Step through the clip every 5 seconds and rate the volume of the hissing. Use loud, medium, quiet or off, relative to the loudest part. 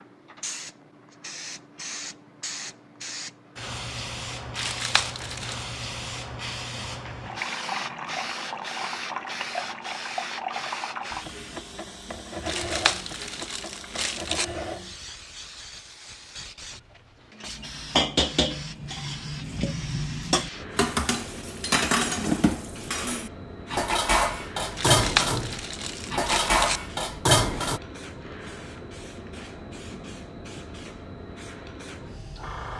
loud, loud, loud, medium, medium, medium, medium.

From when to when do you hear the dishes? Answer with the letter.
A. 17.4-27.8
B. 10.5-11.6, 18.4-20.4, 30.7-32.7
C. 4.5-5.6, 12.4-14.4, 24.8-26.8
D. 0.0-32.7
A.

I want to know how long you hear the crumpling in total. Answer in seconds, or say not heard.
5 s.